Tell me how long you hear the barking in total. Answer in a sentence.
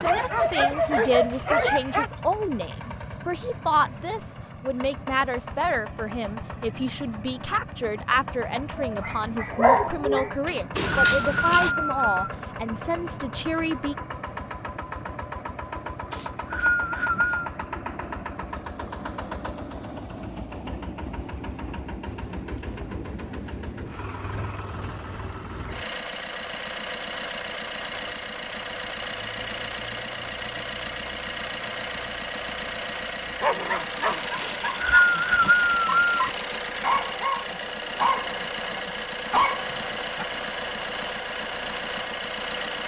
The barking can be heard for 12 seconds in total.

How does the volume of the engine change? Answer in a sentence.
The volume of the engine goes up.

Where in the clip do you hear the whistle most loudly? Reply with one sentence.
The volume of the whistle peaks at 35 seconds.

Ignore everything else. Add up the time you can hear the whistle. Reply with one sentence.
You can hear the whistle for 5 seconds altogether.